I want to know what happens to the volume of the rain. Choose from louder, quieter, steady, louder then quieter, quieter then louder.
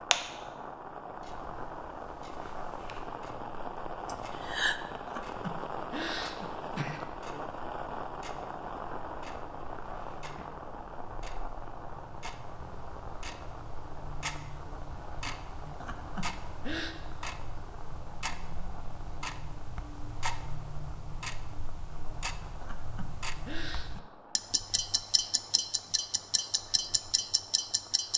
quieter.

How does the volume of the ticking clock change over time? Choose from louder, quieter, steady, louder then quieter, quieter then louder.
quieter then louder.